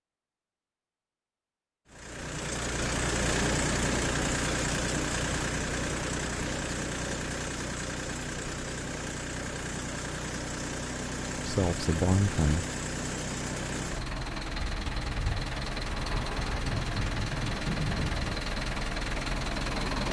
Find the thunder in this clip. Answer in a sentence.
The thunder can be heard from 16.4 to 18.4 s.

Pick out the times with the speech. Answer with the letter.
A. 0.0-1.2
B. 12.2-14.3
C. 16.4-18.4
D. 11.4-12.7
D.